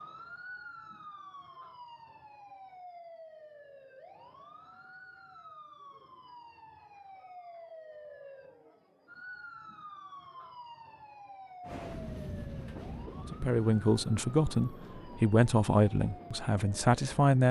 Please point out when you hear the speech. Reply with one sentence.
The speech can be heard from 13.2 to 17.4 s.